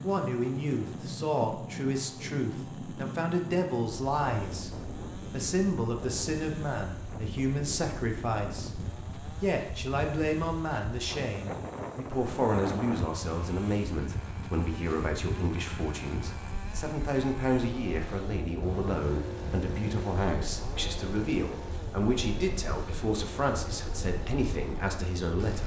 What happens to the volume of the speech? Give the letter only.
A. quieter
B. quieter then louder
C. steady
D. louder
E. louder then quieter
C.